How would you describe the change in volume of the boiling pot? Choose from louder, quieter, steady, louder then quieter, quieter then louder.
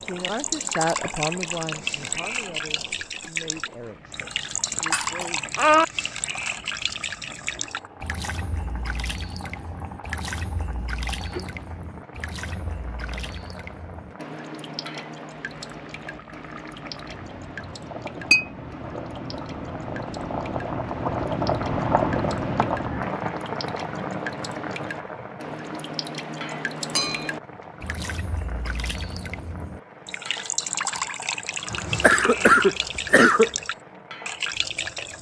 louder then quieter.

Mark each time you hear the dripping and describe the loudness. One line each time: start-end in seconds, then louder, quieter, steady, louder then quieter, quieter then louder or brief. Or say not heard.
0.0-35.1 quieter then louder.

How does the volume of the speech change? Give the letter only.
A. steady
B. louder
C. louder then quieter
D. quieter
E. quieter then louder
D.